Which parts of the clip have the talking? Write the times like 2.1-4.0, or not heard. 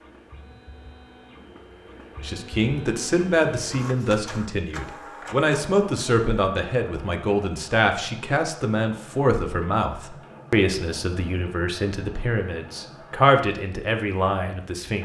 2.2-15.0.